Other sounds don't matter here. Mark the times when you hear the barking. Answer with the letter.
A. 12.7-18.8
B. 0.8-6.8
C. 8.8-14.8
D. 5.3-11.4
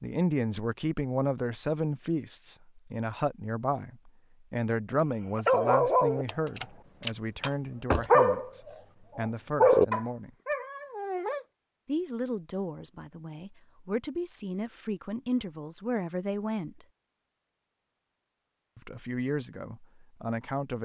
D.